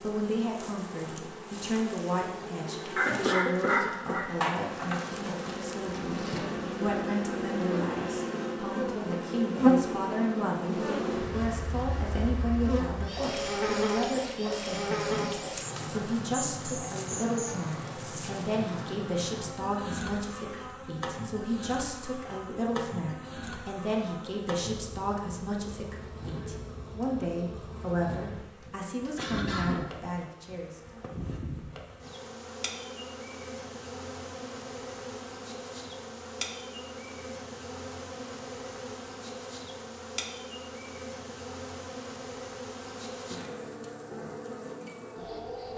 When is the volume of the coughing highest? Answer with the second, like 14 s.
4 s.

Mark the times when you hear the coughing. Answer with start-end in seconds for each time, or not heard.
3.0-5.0, 28.6-29.9.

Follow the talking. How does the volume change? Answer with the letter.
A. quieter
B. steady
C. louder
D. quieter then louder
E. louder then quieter
B.